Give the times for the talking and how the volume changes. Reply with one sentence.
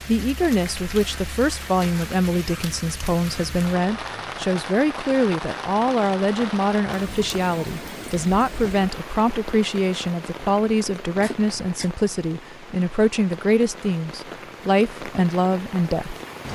The talking can be heard from 0.1 to 16.1 s, at a steady volume.